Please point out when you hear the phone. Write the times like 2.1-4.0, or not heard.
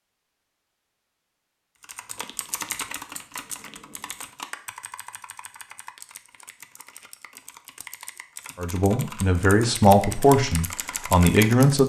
not heard.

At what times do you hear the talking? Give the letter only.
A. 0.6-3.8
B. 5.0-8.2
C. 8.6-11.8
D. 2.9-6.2
C.